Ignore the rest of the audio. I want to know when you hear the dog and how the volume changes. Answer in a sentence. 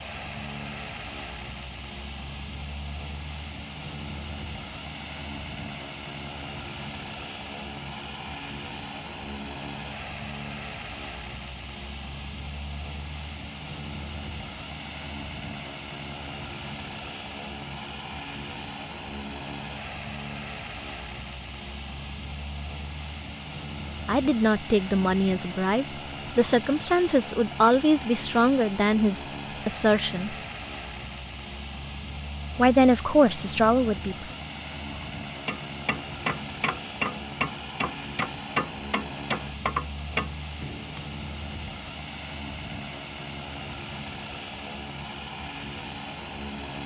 You can't hear the dog here.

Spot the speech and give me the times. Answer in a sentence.
You can hear the speech from 24.1 to 30.4 s and from 32.5 to 34.2 s.